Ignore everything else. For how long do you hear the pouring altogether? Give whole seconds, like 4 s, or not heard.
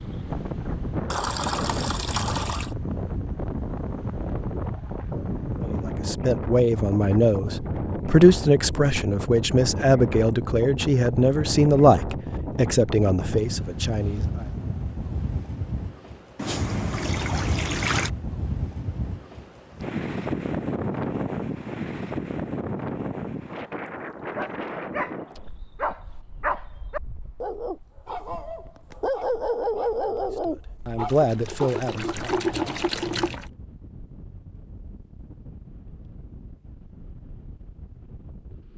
6 s.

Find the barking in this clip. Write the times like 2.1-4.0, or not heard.
24.4-31.8.